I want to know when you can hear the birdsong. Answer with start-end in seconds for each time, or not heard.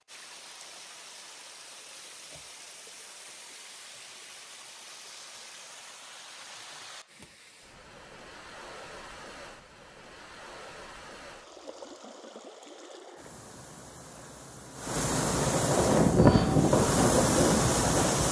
not heard.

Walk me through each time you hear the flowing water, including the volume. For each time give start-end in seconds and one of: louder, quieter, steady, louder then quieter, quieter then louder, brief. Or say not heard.
0.0-18.2 louder.